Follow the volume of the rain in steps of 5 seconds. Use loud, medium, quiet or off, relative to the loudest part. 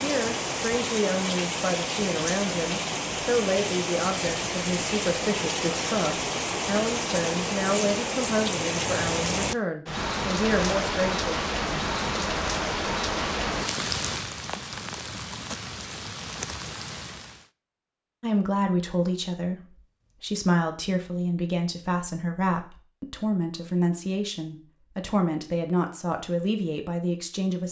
loud, loud, loud, medium, off, off.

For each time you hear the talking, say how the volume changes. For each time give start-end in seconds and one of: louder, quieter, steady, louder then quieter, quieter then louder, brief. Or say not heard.
0.0-11.4 steady
18.2-27.6 steady.